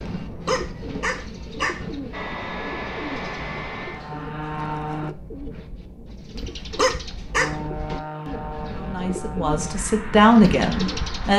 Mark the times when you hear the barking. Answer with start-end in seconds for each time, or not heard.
0.5-1.8, 6.8-7.5.